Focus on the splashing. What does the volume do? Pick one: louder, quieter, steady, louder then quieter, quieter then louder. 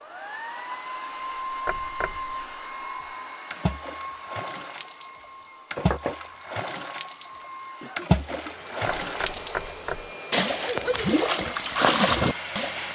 louder.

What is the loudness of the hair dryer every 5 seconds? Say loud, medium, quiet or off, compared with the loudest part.
loud, medium, loud.